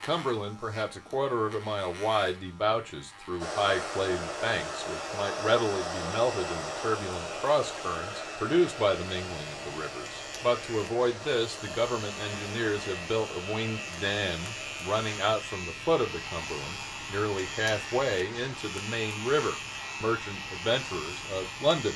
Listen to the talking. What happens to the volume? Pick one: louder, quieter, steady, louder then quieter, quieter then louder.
steady.